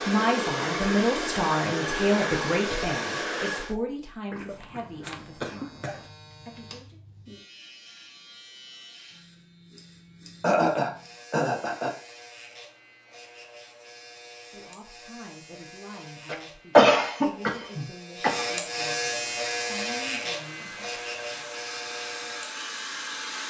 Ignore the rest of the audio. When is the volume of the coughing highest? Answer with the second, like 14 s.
17 s.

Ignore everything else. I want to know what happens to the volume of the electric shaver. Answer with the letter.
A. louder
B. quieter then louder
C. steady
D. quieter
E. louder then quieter
A.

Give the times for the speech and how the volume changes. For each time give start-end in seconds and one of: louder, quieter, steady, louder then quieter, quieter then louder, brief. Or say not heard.
0.1-7.0 quieter
14.5-21.4 steady.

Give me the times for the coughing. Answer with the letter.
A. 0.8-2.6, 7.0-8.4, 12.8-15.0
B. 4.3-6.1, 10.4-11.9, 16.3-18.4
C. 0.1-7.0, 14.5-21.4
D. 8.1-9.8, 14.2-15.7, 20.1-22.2
B.